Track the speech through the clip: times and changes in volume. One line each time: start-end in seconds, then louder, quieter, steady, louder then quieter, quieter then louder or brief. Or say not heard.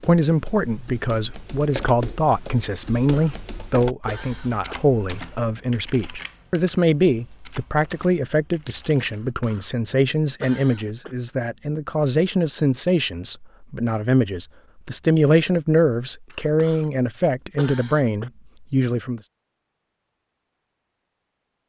0.0-19.2 steady.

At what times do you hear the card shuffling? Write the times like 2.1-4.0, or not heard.
not heard.